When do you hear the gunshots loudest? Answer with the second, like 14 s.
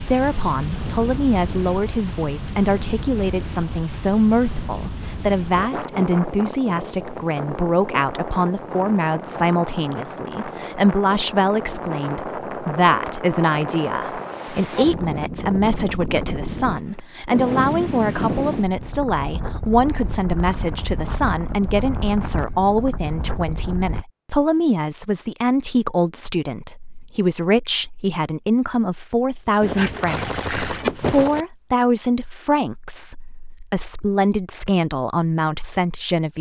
31 s.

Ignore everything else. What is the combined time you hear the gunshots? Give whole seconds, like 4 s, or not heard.
2 s.